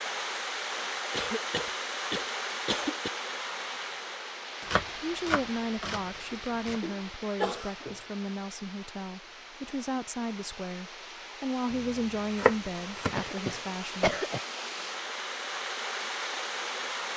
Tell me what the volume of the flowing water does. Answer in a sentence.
The loudness of the flowing water goes down, then up.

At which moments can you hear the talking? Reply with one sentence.
The talking can be heard from 5.0 to 14.2 s.